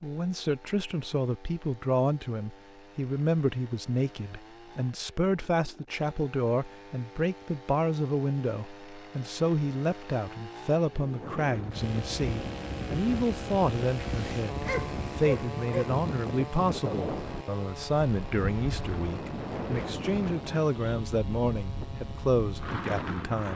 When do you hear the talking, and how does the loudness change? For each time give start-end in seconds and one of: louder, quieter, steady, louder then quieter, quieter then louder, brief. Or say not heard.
0.0-23.5 steady.